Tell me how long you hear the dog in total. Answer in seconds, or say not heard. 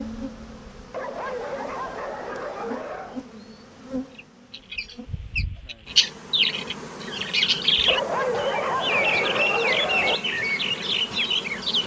5 s.